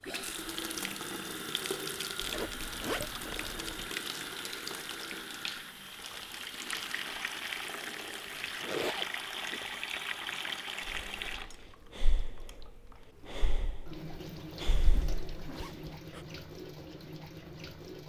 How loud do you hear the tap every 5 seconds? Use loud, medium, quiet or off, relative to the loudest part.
loud, loud, loud, medium.